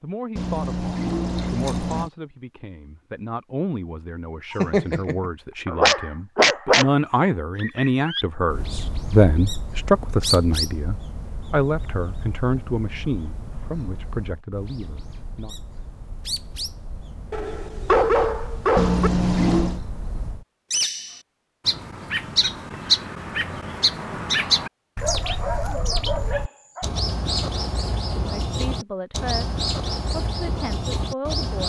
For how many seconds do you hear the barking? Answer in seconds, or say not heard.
6 s.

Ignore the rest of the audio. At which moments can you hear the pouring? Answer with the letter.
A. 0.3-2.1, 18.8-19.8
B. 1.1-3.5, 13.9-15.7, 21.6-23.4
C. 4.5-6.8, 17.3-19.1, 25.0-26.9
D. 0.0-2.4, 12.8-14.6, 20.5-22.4
A.